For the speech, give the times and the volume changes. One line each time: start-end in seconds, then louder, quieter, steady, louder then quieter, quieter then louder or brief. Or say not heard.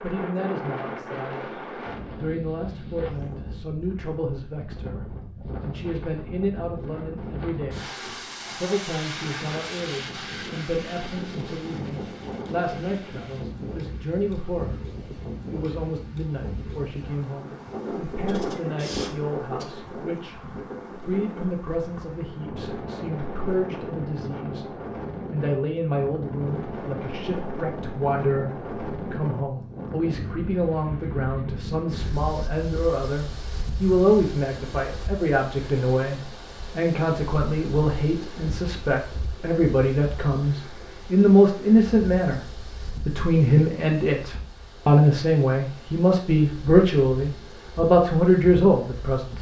0.0-49.3 louder.